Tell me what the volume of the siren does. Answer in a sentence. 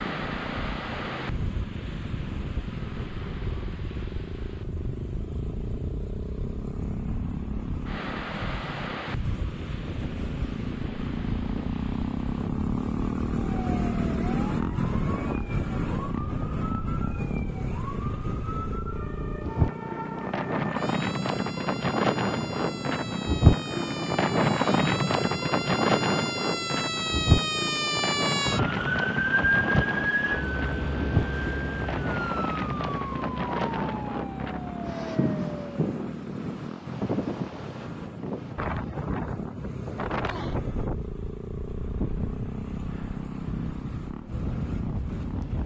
The volume of the siren goes up, then down.